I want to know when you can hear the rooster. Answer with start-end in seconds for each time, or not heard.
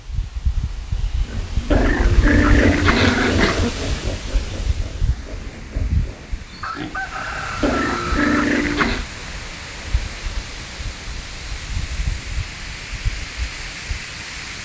6.6-8.2.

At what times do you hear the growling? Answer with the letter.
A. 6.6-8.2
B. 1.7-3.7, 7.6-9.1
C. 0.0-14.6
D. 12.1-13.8
B.